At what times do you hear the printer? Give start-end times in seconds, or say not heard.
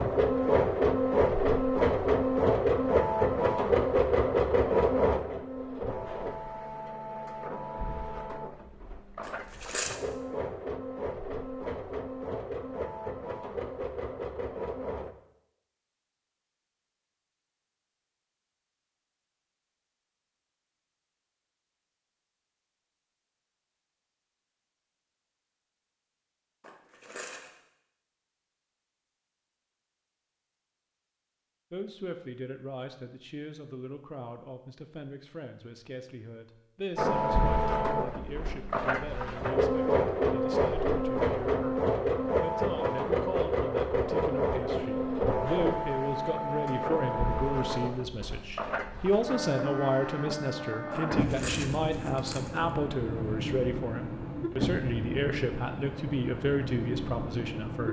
0.0-15.2, 37.0-57.8.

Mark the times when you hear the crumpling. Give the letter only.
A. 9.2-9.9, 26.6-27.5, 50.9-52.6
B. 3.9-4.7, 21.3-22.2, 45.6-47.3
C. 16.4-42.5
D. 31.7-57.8
A.